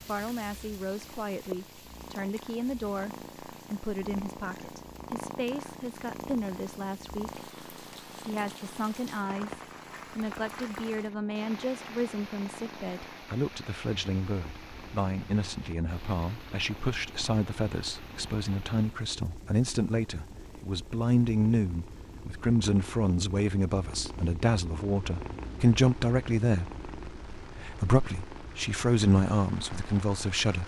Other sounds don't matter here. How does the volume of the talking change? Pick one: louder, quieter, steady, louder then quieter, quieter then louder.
louder.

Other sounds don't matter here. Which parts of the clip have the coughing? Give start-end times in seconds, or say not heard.
not heard.